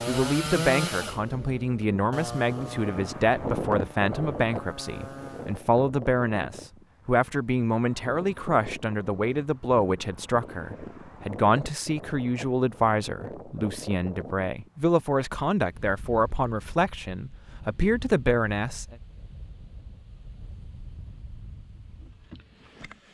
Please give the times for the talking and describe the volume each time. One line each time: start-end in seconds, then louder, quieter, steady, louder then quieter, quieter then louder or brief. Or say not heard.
0.1-18.9 steady.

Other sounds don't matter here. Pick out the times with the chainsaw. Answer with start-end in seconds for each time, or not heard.
0.0-5.6.